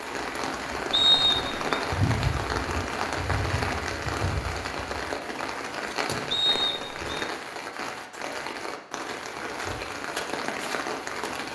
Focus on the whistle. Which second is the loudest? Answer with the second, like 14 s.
1 s.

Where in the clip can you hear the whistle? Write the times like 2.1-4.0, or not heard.
0.9-1.9, 6.3-7.2.